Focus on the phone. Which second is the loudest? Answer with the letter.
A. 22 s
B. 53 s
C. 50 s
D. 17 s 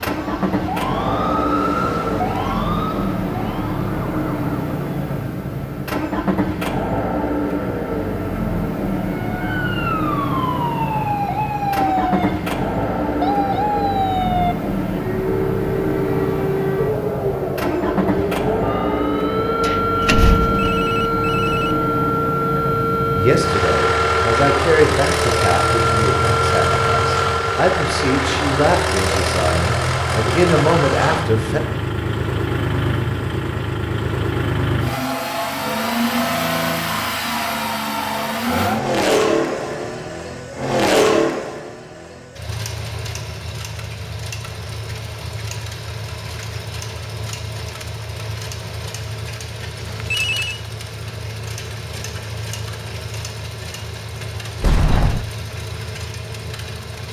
C.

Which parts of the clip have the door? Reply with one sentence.
The door can be heard from 19.6 to 20.6 s and from 54.6 to 55.2 s.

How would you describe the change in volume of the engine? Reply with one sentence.
The loudness of the engine goes down.